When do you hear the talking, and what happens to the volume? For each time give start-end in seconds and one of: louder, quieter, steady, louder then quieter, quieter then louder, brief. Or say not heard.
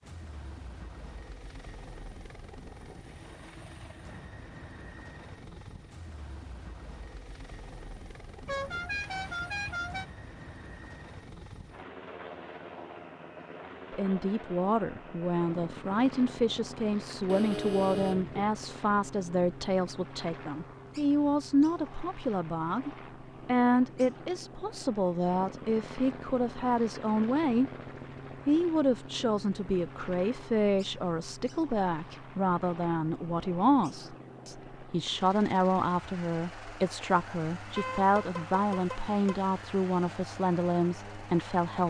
13.9-27.7 steady
28.4-41.8 steady.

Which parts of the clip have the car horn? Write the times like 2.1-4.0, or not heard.
8.4-10.1, 17.2-18.5, 37.8-39.5.